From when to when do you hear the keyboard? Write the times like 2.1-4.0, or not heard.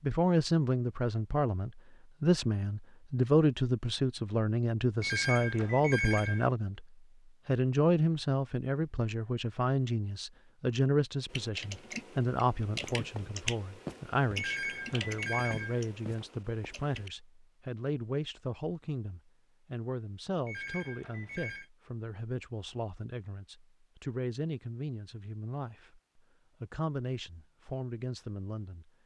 11.3-17.1.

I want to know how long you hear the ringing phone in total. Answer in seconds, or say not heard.
4 s.